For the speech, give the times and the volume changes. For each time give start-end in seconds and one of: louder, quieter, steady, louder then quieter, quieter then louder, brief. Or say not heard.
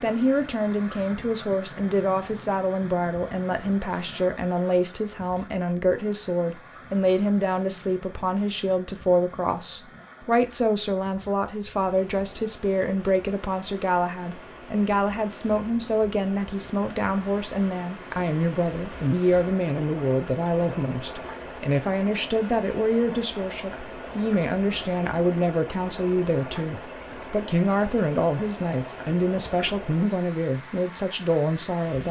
0.0-32.0 steady.